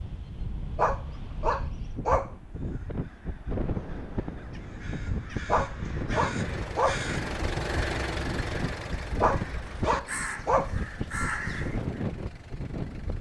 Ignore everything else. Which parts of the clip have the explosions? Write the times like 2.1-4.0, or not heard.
3.5-5.5.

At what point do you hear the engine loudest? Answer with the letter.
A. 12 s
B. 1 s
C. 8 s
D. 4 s
C.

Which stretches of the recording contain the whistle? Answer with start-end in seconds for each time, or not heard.
not heard.